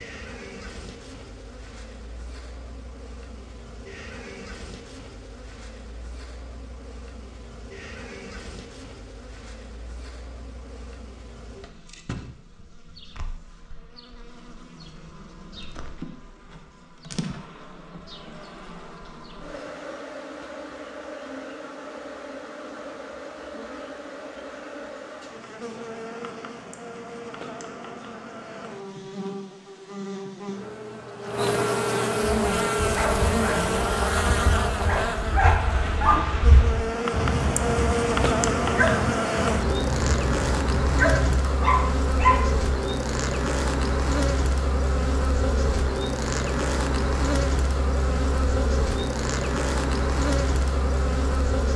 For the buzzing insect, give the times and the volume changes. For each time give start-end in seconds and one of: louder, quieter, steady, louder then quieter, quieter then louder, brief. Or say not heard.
0.0-51.7 louder.